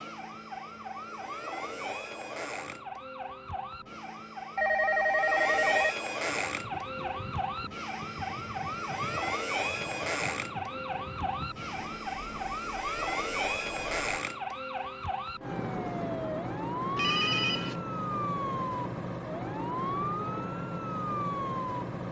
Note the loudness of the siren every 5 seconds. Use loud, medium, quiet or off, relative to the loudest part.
medium, loud, loud, loud, loud.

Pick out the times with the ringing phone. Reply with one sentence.
You can hear the ringing phone from 4.5 to 6.0 s and from 16.9 to 17.8 s.